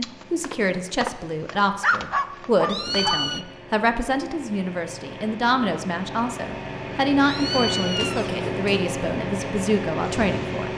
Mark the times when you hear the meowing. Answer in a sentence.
You can hear the meowing from 2.6 to 3.5 s and from 7.2 to 8.7 s.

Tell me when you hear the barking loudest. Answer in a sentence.
The loudest moment of the barking is at 2 seconds.